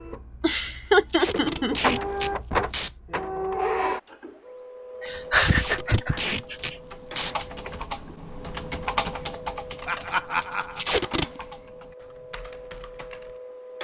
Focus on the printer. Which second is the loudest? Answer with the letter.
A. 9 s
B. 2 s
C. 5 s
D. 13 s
B.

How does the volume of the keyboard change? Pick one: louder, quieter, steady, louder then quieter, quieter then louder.
louder then quieter.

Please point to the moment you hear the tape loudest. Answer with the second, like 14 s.
11 s.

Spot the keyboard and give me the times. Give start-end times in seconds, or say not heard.
5.0-13.4.